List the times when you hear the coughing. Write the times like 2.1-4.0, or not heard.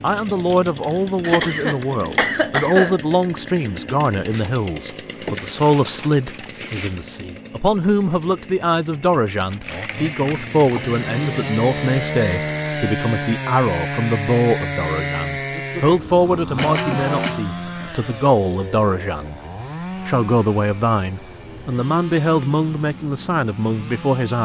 1.2-3.0, 16.6-17.4.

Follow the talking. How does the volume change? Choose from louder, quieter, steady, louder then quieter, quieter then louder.
steady.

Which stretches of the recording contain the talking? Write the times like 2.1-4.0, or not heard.
0.0-19.4, 20.1-24.4.